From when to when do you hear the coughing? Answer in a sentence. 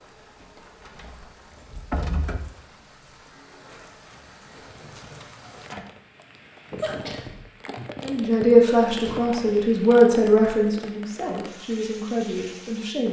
The coughing can be heard from 6.8 to 7.4 s.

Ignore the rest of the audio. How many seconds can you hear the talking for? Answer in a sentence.
The talking can be heard for 5 seconds in total.